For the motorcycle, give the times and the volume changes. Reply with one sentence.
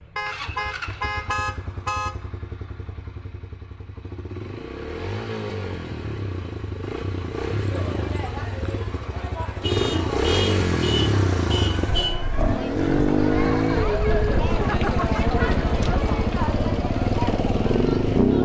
The motorcycle can be heard from 0.0 to 18.4 s, getting louder.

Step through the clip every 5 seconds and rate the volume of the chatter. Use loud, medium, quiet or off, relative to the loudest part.
off, medium, loud, loud.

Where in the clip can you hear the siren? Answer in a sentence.
You can't hear the siren here.